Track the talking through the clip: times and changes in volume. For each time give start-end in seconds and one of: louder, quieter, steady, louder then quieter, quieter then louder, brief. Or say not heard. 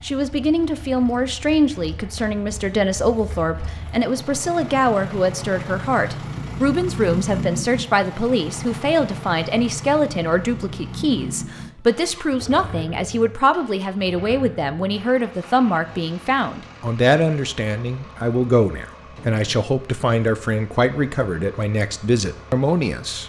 0.0-23.2 steady.